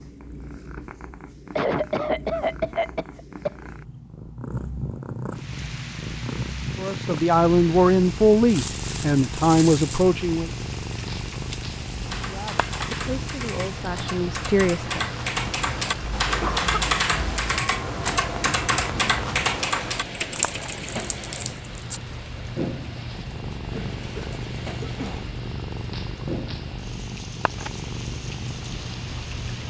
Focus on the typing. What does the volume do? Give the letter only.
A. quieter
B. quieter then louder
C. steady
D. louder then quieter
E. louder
E.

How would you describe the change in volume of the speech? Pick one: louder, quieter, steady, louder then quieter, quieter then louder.
quieter then louder.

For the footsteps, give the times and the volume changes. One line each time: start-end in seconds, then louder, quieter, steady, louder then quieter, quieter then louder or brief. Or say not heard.
not heard.